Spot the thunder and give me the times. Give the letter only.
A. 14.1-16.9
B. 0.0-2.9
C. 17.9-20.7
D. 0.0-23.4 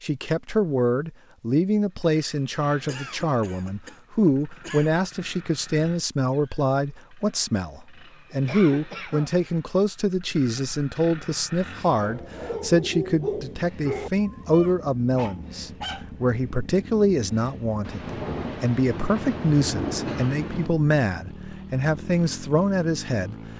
C.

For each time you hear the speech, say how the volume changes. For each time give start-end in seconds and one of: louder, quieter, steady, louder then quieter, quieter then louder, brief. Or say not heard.
0.0-23.4 steady.